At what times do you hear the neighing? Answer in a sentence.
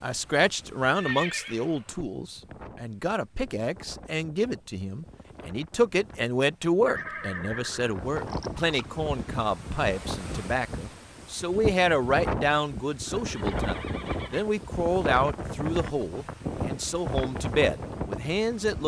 The neighing can be heard from 0.8 to 2.0 s, from 6.8 to 8.9 s and from 13.1 to 14.6 s.